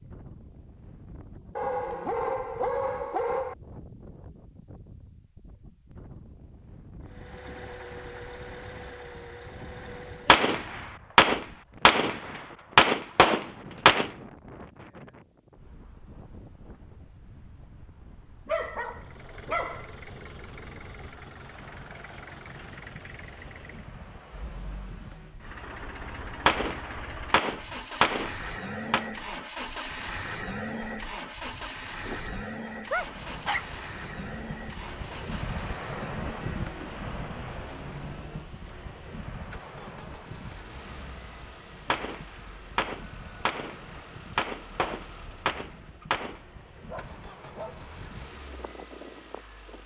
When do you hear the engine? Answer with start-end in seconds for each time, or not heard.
7.0-10.5, 18.8-49.8.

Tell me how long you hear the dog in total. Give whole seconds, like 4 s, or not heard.
6 s.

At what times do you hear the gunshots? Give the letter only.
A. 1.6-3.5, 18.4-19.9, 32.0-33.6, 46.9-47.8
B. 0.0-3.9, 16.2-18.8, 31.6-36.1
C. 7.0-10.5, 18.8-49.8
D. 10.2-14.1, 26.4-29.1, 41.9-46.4
D.